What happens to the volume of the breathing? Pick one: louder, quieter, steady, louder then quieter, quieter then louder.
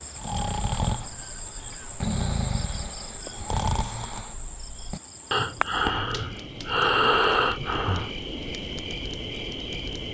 louder.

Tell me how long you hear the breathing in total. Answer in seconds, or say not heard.
8 s.